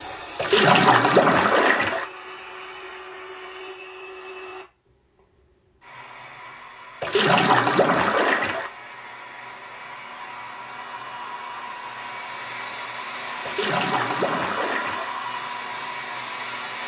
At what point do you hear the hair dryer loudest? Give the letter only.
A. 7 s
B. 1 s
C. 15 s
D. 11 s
C.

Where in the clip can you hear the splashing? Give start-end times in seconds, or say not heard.
0.3-2.0, 7.0-8.7, 13.4-15.1.